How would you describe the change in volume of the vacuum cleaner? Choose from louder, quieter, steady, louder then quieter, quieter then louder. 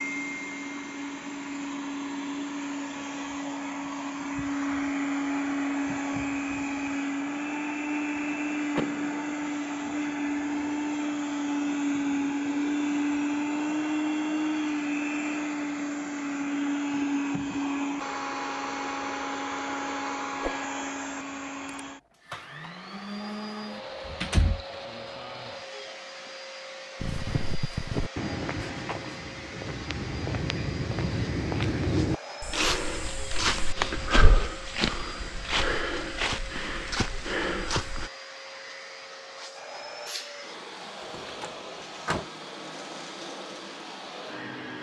quieter.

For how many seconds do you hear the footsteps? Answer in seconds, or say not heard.
11 s.